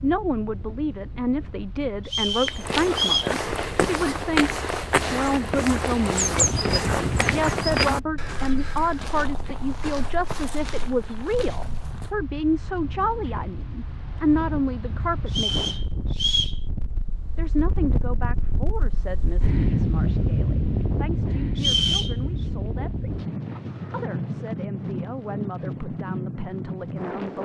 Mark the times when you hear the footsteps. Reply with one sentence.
The footsteps can be heard from 2.5 to 12.1 s.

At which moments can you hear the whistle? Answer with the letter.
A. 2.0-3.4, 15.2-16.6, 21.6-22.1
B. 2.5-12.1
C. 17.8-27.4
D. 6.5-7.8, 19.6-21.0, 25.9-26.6
A.